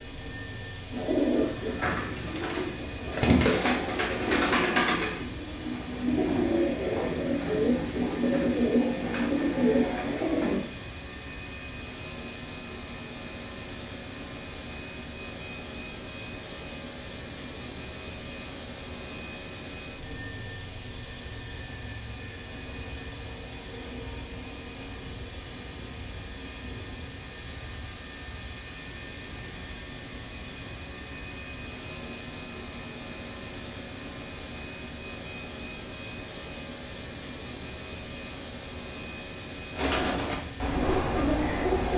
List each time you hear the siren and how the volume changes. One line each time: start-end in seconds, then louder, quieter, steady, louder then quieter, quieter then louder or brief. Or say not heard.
not heard.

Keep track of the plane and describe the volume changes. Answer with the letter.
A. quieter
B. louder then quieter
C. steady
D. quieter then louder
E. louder
C.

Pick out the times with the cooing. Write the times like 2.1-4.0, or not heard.
0.9-10.7, 39.7-41.9.